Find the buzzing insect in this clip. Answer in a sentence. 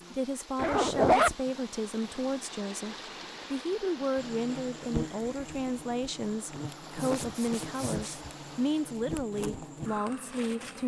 The buzzing insect can be heard from 4.2 to 10.8 s.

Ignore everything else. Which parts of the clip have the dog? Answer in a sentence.
You can't hear the dog here.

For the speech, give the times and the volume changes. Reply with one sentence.
You can hear the speech from 0.1 to 10.8 s, at a steady volume.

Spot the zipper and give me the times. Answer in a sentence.
You can hear the zipper from 0.6 to 1.4 s and from 7.0 to 8.2 s.